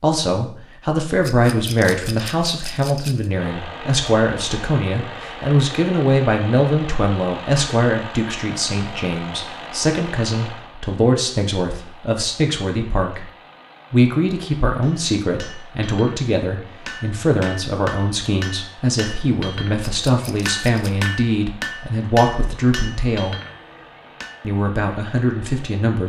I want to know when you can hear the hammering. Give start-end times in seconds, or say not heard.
14.8-24.4.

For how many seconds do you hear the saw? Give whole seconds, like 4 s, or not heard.
not heard.